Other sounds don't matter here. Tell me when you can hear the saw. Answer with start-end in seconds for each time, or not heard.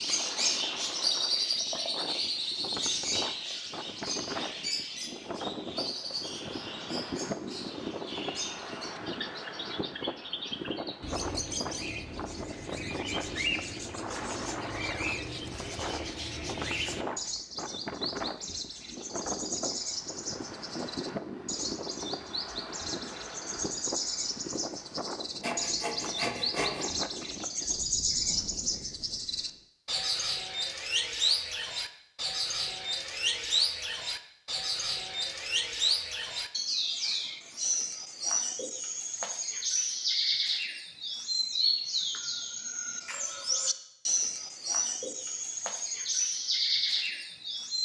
25.4-26.9.